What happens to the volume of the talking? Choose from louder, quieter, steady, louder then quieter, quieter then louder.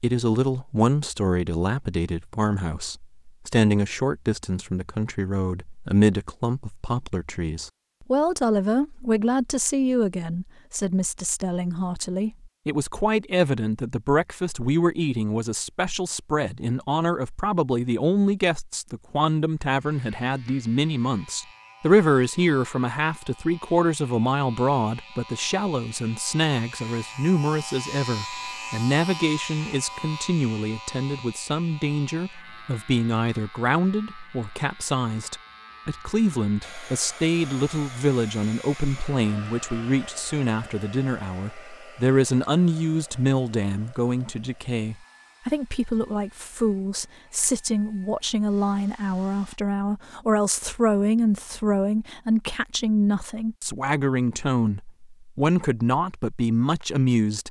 steady.